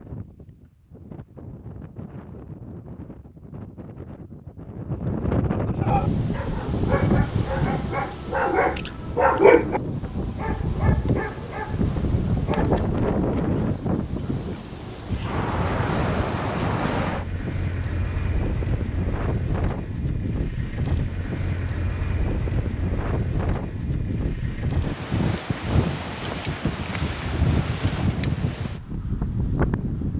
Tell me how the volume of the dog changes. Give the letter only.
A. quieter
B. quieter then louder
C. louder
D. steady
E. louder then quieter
E.